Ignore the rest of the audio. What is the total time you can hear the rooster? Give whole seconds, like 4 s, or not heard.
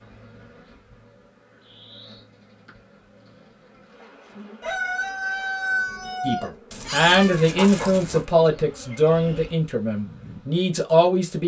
2 s.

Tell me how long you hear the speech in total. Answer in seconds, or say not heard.
5 s.